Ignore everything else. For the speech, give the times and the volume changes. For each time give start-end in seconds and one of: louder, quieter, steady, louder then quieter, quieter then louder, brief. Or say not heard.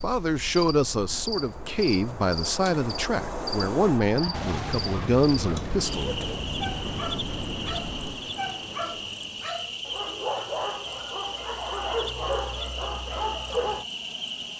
0.0-6.2 steady.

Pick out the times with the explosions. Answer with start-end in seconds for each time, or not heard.
4.3-8.3.